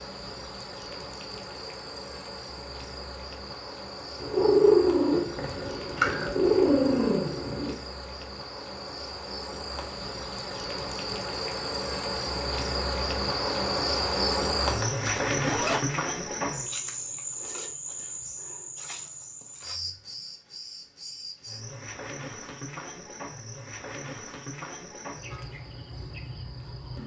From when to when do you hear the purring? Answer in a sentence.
You can hear the purring from 4.2 to 7.8 s.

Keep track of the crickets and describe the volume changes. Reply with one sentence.
The loudness of the crickets goes up, then down.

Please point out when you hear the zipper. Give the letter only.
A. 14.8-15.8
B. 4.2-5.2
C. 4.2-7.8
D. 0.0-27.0
A.